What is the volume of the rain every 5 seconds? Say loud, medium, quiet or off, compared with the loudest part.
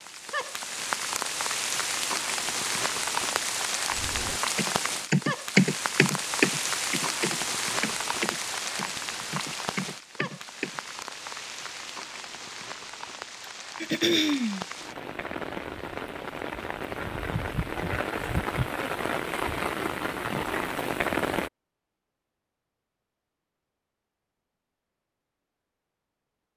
loud, loud, medium, loud, loud, off.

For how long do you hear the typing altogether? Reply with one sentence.
You can hear the typing for 7 seconds altogether.